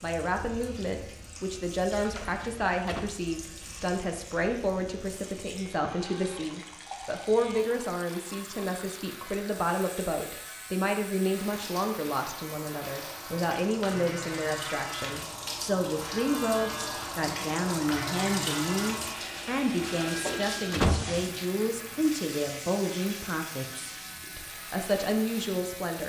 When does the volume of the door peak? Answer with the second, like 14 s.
21 s.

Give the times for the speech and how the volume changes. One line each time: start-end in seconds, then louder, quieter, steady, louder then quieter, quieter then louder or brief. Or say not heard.
0.0-26.0 steady.